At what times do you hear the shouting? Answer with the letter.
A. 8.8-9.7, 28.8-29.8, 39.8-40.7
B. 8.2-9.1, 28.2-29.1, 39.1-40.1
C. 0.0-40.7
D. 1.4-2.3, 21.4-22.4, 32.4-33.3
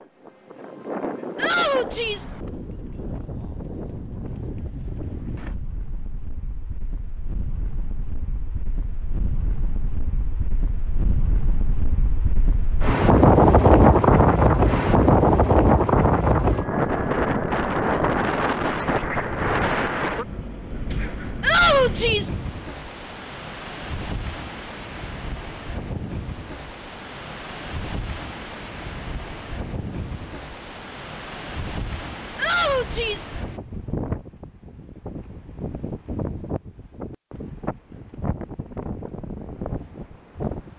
D.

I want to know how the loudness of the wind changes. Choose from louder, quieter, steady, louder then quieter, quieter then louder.
louder then quieter.